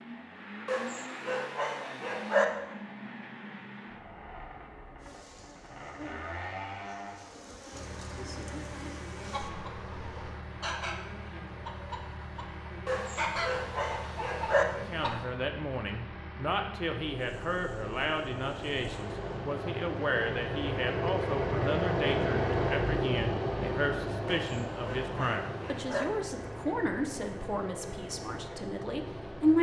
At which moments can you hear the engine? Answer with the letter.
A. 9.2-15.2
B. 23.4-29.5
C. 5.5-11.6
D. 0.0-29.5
D.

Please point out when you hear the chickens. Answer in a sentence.
The chickens can be heard from 9.2 to 15.2 s.